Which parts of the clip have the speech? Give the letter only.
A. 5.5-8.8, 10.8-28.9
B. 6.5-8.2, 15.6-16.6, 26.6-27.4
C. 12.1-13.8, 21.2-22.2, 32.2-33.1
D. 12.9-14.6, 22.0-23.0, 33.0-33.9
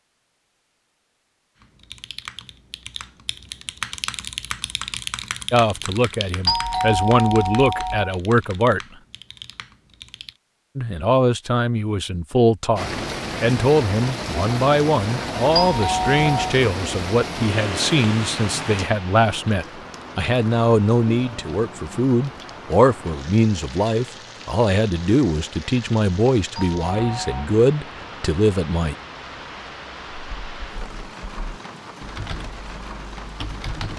A.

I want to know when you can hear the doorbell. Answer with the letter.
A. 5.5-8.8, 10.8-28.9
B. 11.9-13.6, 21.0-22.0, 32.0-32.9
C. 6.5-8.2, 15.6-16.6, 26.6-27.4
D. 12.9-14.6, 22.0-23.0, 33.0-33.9
C.